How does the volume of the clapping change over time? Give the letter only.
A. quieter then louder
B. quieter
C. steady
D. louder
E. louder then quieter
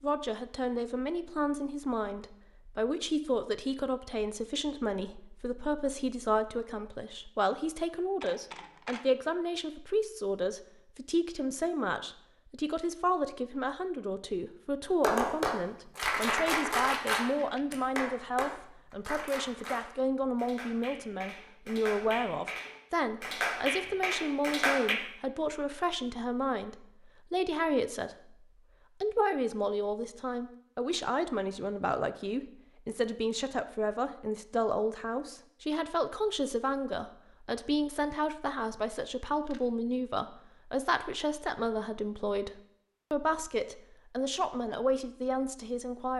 A.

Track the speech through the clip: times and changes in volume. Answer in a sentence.
You can hear the speech from 0.0 to 28.4 s, at a steady volume; and from 29.0 to 46.1 s, at a steady volume.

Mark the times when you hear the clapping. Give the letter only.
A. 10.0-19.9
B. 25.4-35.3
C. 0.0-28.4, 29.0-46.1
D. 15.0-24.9
D.